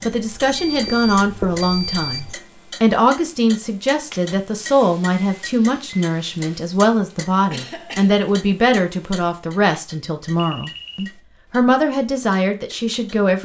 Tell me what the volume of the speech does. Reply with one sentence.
The loudness of the speech stays about the same.